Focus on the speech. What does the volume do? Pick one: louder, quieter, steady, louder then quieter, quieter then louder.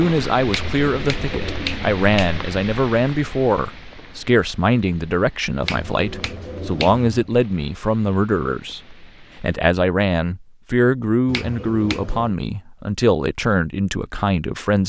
steady.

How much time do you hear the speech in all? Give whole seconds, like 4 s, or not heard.
15 s.